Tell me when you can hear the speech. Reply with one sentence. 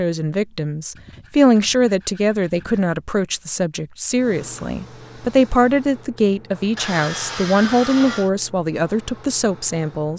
The speech can be heard from 0.0 to 10.1 s.